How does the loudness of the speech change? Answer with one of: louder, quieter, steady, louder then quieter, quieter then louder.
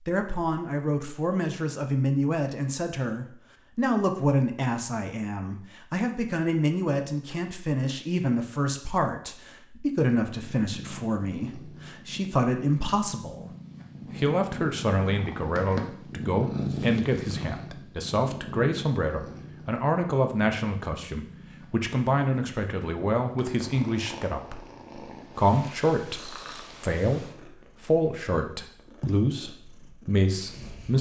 steady.